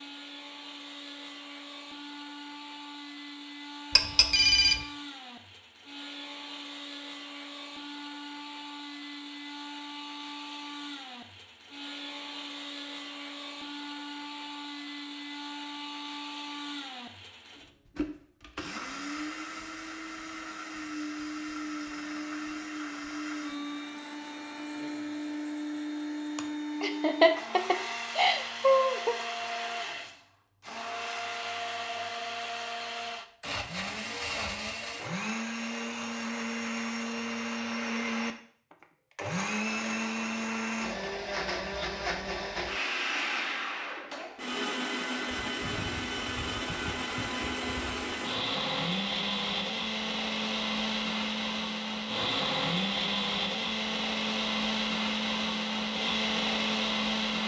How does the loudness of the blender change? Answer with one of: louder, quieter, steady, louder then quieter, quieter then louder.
louder.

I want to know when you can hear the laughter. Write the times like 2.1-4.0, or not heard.
26.4-29.1.